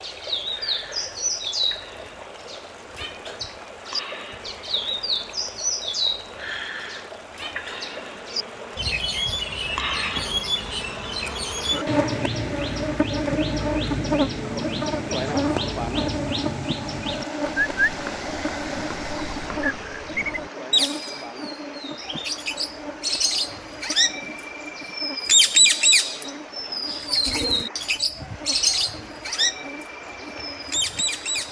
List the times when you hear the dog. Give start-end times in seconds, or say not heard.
not heard.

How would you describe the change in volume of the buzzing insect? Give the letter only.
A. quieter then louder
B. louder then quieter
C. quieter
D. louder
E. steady
B.